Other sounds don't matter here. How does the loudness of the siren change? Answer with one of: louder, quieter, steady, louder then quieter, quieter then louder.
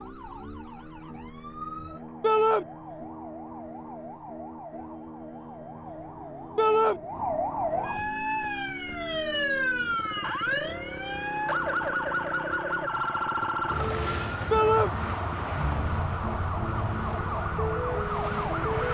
louder.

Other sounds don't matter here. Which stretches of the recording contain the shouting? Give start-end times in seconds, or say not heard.
2.2-2.6, 6.5-7.0, 14.5-14.9.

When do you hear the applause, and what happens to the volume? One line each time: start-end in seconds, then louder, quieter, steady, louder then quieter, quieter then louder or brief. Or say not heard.
not heard.